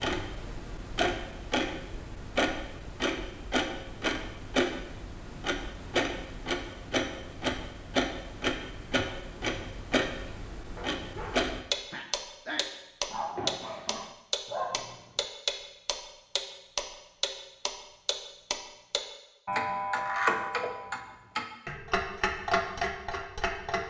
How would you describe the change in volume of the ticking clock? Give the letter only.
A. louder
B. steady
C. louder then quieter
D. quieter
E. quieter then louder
B.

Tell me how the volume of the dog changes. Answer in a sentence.
The loudness of the dog goes up.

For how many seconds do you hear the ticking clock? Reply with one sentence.
You can hear the ticking clock for 24 seconds altogether.